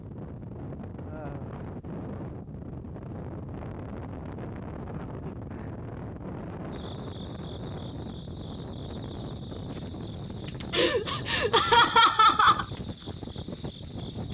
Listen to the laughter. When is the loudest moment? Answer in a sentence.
The loudest moment of the laughter is at 12 seconds.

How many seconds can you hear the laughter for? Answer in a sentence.
The laughter can be heard for 3 seconds in total.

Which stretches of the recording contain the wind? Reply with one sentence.
The wind can be heard from 0.0 to 14.2 s.